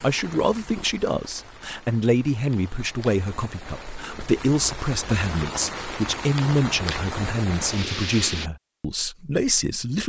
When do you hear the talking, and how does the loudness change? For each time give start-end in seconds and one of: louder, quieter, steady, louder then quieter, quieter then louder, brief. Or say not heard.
0.0-10.0 steady.